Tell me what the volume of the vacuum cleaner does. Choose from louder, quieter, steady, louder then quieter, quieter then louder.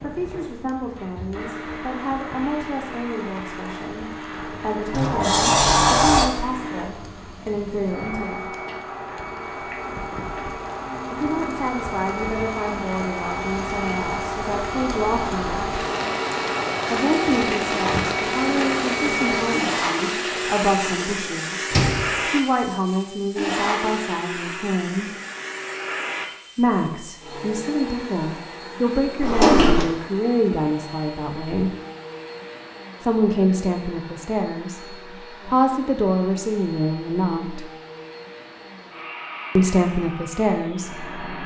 louder then quieter.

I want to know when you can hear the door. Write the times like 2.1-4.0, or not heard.
4.9-6.3, 21.7-22.2, 29.1-29.9.